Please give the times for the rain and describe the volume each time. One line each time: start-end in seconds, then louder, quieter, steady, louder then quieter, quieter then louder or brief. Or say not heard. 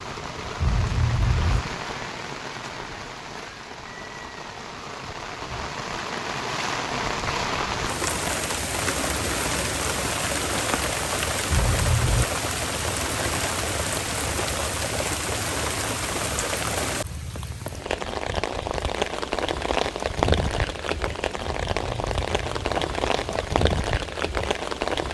0.0-25.0 louder.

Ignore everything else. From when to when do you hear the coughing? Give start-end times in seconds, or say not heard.
0.6-1.6, 11.5-12.2, 21.4-23.4.